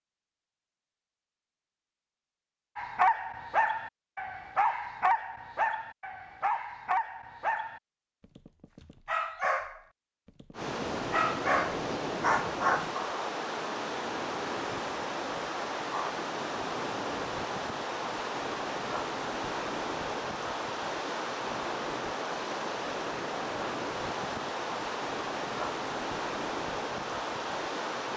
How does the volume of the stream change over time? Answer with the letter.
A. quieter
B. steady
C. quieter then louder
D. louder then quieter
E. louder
B.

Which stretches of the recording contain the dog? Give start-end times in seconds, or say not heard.
2.8-12.9.